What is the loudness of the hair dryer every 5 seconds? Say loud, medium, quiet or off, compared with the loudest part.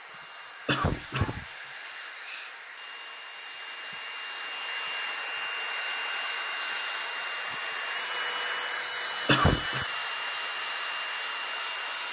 medium, loud, loud.